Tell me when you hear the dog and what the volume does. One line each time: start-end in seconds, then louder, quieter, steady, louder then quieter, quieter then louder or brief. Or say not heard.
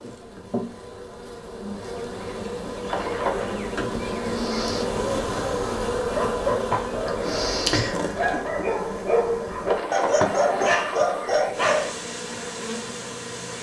6.0-12.2 louder.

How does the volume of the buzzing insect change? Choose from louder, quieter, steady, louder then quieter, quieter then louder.
louder then quieter.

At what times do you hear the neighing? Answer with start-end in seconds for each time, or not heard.
2.9-3.6, 9.7-11.5.